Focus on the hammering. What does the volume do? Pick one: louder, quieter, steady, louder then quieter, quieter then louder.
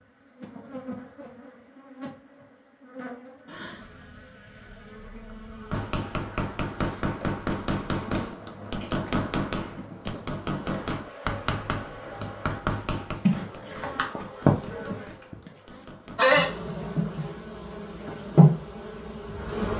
quieter.